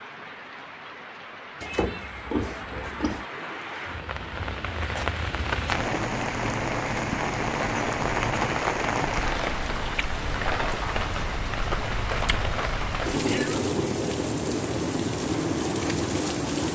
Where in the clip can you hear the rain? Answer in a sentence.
You can hear the rain from 0.0 to 16.6 s.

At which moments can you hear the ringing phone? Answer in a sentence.
You can't hear the ringing phone here.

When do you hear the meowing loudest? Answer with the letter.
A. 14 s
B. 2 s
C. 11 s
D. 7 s
B.